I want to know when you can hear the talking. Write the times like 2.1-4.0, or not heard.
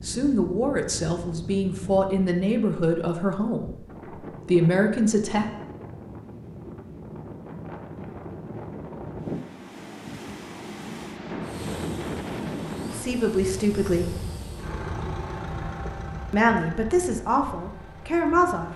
0.0-5.5, 12.8-14.2, 16.3-18.7.